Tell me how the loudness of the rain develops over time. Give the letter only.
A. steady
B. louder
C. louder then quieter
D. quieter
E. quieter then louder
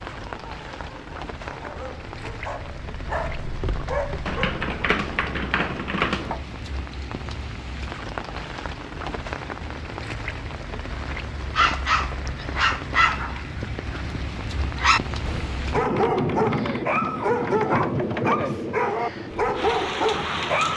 B.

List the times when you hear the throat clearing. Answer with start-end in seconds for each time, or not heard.
not heard.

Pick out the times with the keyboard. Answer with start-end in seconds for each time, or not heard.
4.2-6.4, 15.8-18.5.